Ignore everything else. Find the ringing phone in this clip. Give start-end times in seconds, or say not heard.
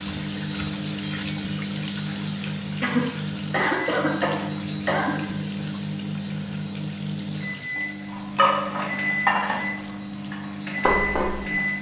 not heard.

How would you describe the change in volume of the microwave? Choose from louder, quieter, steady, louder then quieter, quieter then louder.
steady.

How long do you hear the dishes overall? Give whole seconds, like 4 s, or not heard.
3 s.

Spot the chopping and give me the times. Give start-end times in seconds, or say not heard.
not heard.